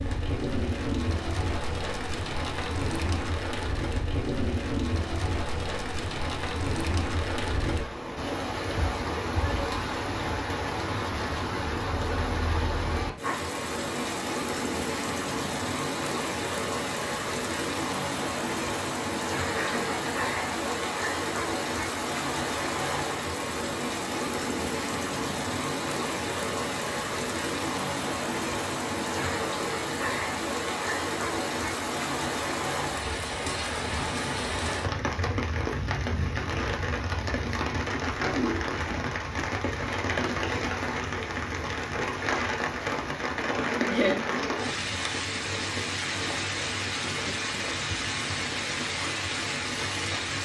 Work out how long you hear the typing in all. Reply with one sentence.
The typing can't be heard in this clip.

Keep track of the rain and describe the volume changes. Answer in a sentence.
The loudness of the rain stays about the same.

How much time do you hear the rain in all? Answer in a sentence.
The rain can be heard for 50 seconds in total.